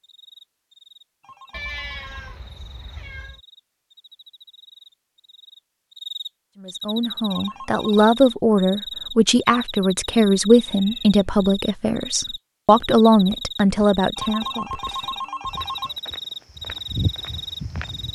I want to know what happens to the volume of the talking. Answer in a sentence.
The loudness of the talking stays about the same.